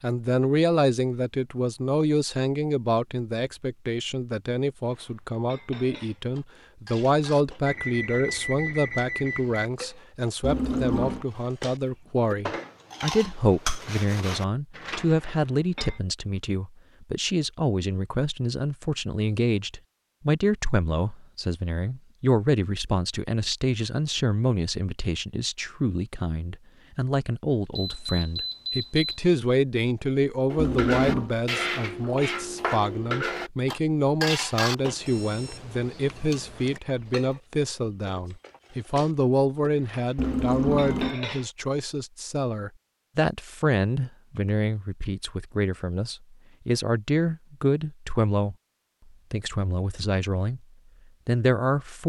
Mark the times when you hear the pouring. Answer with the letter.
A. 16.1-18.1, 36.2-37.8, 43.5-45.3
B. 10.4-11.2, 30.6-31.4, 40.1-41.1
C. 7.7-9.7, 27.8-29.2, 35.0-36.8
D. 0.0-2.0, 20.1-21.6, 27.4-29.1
B.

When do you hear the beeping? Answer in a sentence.
The beeping can be heard from 7.7 to 9.7 s, from 27.8 to 29.2 s and from 35.0 to 36.8 s.